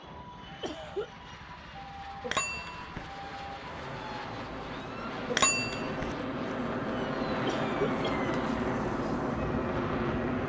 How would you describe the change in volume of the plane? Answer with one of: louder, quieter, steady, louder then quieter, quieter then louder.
louder.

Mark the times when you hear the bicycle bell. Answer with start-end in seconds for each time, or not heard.
2.2-3.1, 5.3-6.2.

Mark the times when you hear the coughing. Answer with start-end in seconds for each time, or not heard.
0.6-1.1, 7.5-8.3.